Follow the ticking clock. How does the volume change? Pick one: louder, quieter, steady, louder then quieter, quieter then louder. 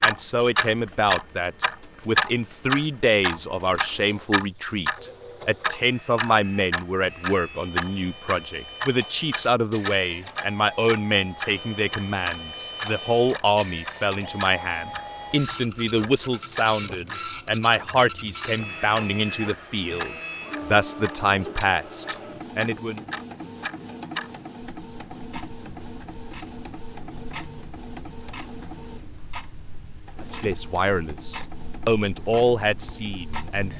quieter.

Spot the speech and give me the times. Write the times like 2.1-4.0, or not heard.
0.0-23.1, 30.2-33.7.